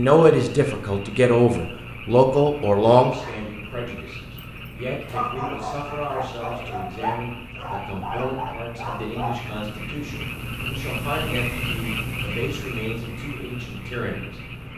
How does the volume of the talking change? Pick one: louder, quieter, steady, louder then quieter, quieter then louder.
quieter.